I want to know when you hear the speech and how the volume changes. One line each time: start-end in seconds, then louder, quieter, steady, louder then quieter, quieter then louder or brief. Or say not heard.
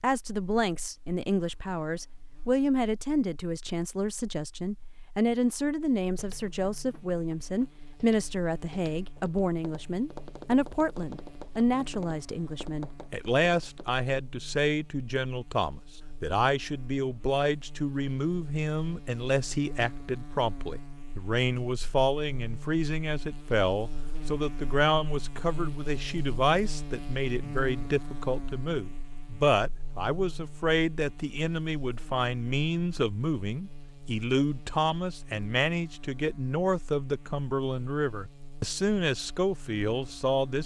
0.0-40.6 steady.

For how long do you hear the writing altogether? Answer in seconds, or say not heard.
not heard.